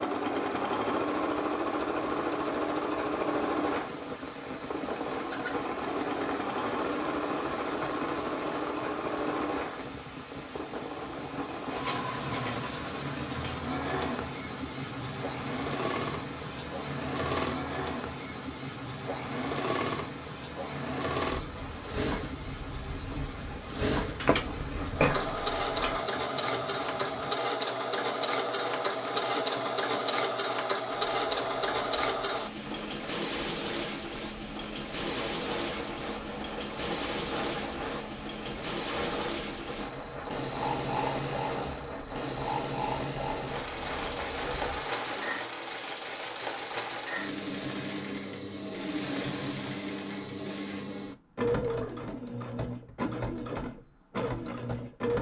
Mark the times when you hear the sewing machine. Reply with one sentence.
You can hear the sewing machine from 0.0 to 55.1 s.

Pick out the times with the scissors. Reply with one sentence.
The scissors can be heard from 24.1 to 26.1 s.